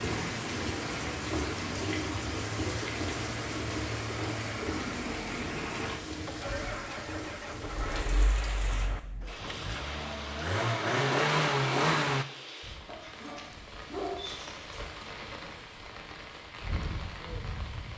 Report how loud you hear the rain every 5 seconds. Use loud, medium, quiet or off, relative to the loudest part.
loud, medium, medium, medium.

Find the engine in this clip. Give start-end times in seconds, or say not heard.
0.0-12.2.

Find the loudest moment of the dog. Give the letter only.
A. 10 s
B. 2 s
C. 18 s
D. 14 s
D.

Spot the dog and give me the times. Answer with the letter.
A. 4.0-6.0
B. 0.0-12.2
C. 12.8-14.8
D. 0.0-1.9
C.